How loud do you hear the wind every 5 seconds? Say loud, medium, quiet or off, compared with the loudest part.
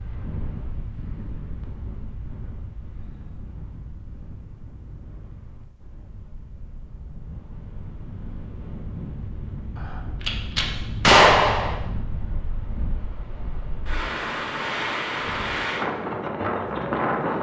quiet, quiet, medium, loud.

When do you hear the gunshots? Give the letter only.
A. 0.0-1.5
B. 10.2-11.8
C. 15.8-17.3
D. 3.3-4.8
B.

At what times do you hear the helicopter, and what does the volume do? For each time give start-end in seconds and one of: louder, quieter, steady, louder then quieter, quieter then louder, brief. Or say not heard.
not heard.